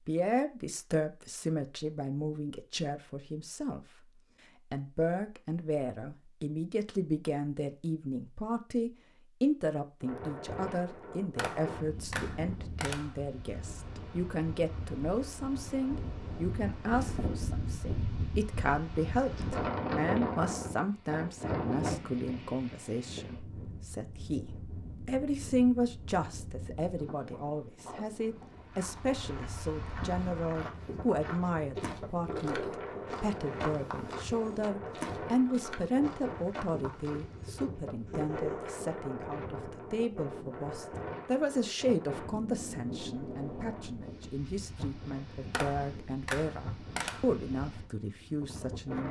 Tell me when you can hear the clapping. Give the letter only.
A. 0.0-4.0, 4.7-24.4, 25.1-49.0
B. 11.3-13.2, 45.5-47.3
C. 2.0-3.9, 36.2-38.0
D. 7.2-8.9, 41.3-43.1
B.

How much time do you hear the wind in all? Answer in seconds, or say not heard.
39 s.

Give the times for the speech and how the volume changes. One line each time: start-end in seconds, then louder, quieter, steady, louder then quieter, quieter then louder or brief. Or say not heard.
0.0-4.0 quieter
4.7-24.4 steady
25.1-49.0 steady.